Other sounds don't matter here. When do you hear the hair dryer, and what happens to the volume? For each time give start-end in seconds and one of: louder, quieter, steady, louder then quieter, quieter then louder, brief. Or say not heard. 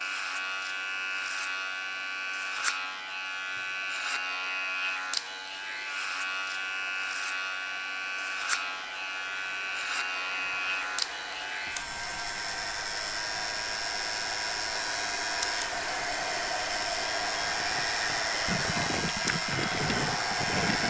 0.1-20.8 louder.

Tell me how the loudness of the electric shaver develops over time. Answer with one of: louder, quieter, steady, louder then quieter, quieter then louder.
steady.